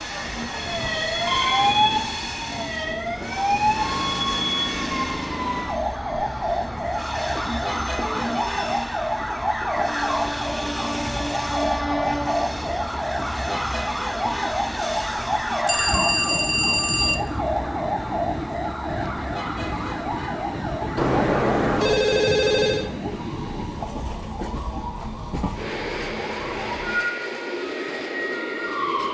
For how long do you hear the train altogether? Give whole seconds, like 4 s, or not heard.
29 s.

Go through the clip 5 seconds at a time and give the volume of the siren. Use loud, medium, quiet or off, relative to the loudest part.
loud, loud, loud, loud, medium, medium.